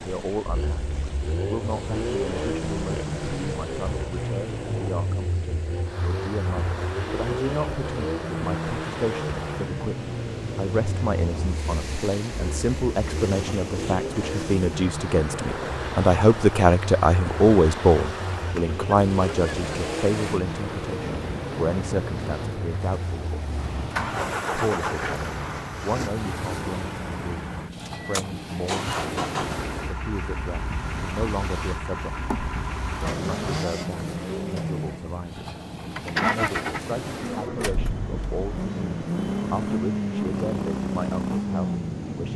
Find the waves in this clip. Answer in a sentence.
You can hear the waves from 0.0 to 42.3 s.